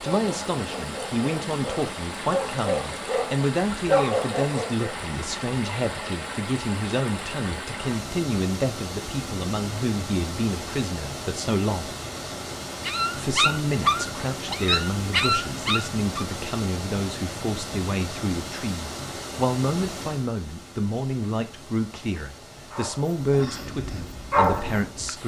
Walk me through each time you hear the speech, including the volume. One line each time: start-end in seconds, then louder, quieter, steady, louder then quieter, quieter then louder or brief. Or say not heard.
0.0-11.9 steady
13.2-25.2 steady.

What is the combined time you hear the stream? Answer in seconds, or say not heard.
25 s.